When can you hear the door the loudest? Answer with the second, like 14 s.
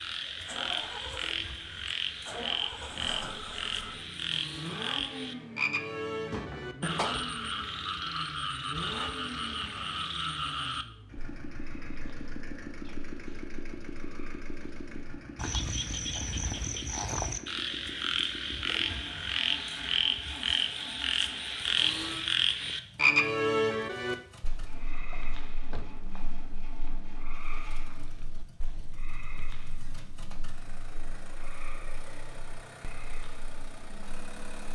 7 s.